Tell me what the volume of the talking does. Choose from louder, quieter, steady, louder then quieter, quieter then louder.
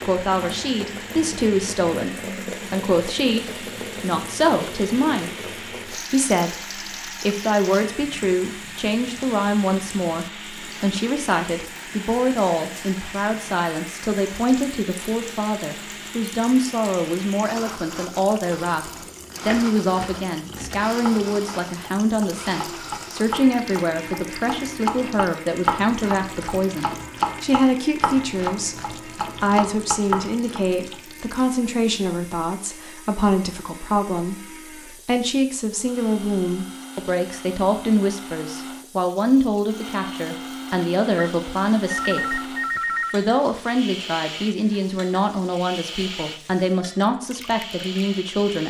steady.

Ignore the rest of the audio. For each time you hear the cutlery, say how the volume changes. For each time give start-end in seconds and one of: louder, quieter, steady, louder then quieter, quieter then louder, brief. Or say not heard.
not heard.